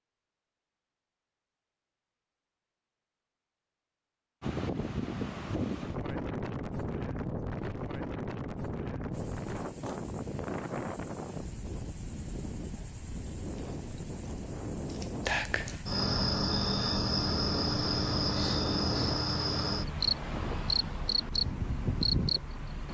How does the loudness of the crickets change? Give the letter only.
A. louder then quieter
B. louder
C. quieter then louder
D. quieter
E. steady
B.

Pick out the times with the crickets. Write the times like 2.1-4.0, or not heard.
9.1-22.8.